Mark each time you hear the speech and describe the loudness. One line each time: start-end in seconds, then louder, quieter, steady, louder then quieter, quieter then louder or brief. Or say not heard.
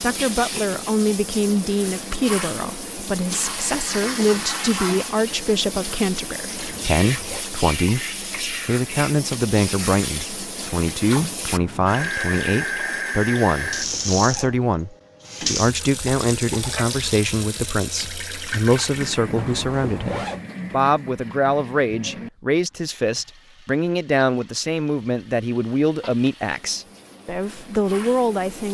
0.0-28.7 steady.